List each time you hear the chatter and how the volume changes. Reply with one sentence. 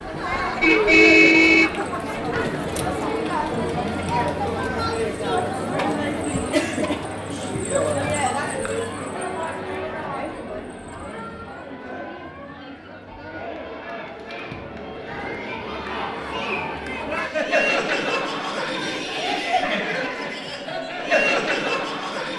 The chatter can be heard from 0.0 to 22.3 s, getting quieter then louder.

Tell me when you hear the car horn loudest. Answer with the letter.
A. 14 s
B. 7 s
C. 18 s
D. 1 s
D.